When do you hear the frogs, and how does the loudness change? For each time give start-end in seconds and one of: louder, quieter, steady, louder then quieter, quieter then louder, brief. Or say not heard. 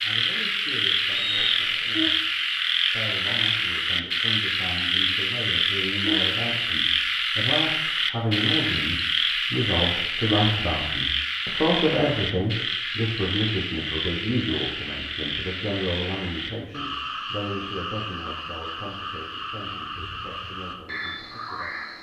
0.0-21.9 quieter.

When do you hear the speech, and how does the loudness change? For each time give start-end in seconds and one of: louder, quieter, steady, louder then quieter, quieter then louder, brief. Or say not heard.
0.0-2.2 brief
2.9-21.7 louder then quieter.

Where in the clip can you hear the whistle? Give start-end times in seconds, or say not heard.
1.1-2.1.